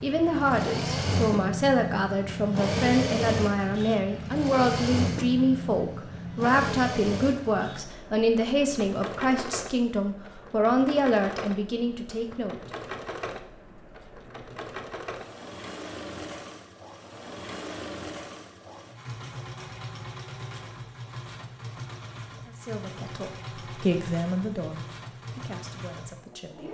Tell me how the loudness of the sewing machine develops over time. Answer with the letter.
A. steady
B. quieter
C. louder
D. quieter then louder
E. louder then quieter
B.